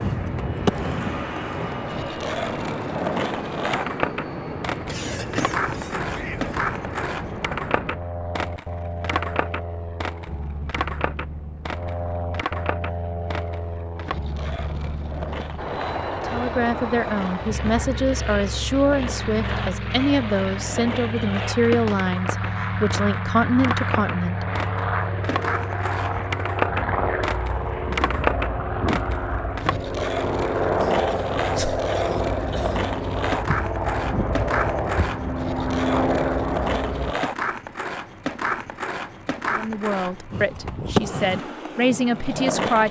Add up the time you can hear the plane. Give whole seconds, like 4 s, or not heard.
37 s.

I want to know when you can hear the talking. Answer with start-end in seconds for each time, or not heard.
16.3-24.4, 39.5-42.8.